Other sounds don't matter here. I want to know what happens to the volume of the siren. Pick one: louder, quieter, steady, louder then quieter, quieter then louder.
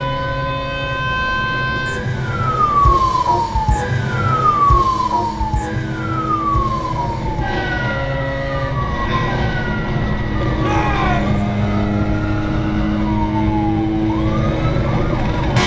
quieter.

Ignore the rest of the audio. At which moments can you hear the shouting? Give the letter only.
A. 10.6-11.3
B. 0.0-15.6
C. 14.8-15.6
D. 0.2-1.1
A.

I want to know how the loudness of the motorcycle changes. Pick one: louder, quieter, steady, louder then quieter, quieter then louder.
louder.